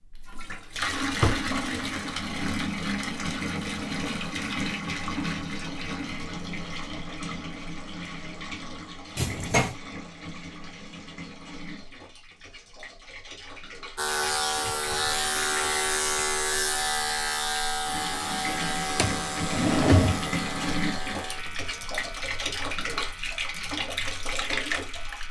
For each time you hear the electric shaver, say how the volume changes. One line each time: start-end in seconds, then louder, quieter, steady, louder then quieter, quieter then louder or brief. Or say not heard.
13.9-25.2 quieter.